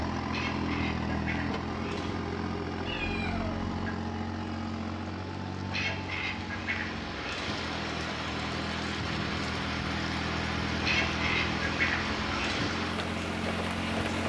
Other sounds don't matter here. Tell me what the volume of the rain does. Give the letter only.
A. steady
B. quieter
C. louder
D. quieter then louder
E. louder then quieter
C.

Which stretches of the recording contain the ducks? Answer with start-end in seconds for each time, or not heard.
0.2-2.2, 5.7-7.6, 10.8-12.7.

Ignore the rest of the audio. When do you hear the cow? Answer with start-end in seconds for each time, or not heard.
not heard.